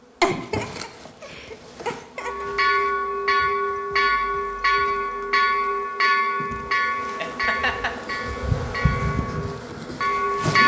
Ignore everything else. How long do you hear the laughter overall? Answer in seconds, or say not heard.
3 s.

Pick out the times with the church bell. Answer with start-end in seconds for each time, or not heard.
2.1-10.6.